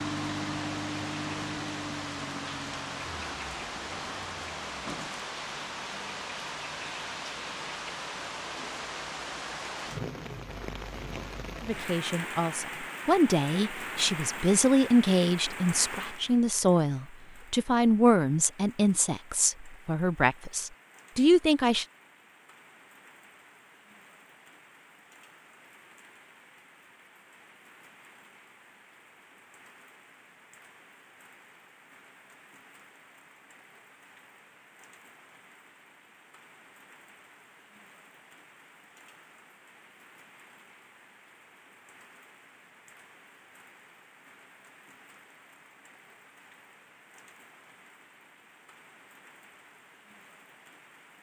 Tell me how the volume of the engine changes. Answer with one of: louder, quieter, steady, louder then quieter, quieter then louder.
quieter.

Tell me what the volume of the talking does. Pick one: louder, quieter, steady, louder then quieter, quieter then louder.
steady.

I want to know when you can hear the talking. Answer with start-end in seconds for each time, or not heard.
11.6-21.9.